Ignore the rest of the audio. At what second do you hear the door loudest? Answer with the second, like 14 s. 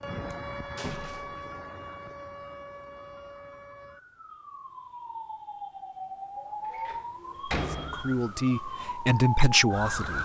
8 s.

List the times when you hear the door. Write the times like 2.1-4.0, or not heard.
0.8-1.4, 6.7-8.2.